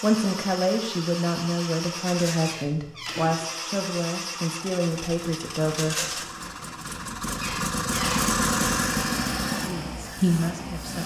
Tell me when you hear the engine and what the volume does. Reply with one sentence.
The engine can be heard from 0.0 to 11.0 s, getting louder.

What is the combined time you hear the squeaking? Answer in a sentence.
The squeaking can be heard for 2 seconds in total.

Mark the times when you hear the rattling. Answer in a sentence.
You can hear the rattling from 2.0 to 2.5 s and from 5.8 to 6.3 s.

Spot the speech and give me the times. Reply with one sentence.
You can hear the speech from 0.0 to 6.2 s and from 9.6 to 11.0 s.